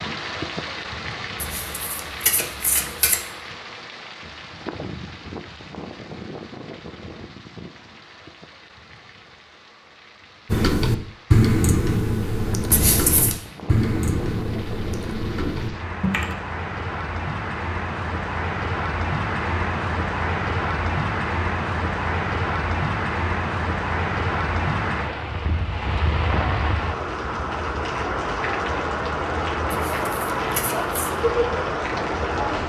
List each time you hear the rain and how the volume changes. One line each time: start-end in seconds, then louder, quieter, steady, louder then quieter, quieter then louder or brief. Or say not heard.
0.0-32.6 quieter then louder.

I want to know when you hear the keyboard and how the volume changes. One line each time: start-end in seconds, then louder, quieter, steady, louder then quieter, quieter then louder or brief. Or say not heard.
10.5-16.4 quieter.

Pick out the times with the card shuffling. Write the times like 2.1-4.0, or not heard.
1.4-3.2, 12.7-13.3, 29.7-31.1.